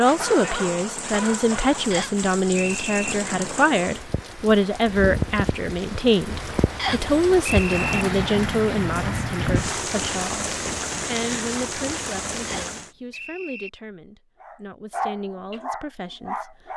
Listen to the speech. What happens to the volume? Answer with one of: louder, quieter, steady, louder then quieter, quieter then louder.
quieter.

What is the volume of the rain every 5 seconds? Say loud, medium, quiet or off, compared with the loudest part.
medium, loud, loud, off.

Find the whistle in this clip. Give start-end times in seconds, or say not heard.
1.9-3.1, 6.8-8.1, 12.4-13.7.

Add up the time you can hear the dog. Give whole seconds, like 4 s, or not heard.
4 s.